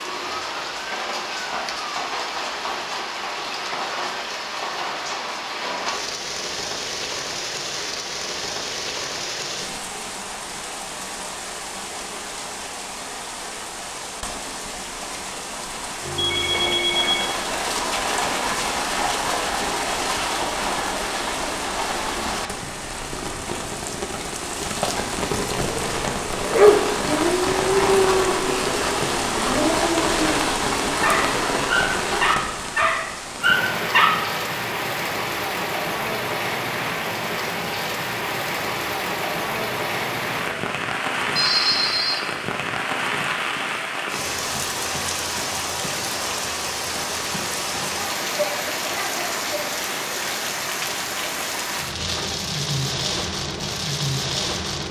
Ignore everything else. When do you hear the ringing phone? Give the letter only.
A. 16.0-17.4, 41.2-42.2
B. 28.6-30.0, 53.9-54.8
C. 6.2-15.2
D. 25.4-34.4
A.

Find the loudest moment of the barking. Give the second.
27 s.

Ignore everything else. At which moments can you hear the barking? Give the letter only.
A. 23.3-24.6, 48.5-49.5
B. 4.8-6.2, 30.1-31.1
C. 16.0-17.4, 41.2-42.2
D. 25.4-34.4
D.